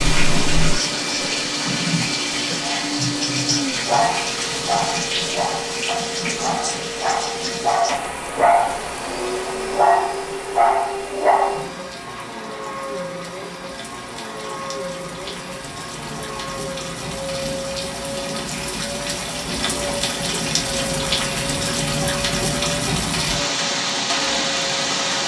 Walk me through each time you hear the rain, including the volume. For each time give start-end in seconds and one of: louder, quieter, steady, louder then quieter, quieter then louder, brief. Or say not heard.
0.0-25.2 quieter then louder.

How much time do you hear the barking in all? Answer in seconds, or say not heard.
10 s.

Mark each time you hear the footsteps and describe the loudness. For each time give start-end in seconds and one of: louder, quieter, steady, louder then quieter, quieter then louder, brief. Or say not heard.
not heard.